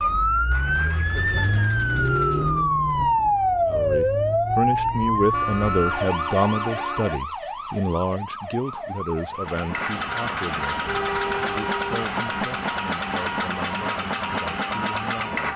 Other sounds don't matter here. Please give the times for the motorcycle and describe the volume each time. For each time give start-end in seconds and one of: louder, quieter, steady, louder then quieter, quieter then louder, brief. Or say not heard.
0.0-2.7 brief
9.3-15.5 steady.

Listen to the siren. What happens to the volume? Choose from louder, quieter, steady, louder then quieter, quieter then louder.
quieter.